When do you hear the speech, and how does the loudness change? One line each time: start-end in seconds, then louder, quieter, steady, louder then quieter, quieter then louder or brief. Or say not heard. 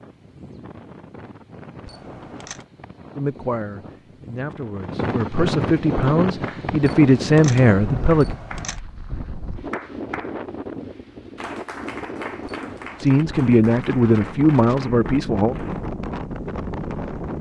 3.1-8.3 louder
13.0-15.6 brief.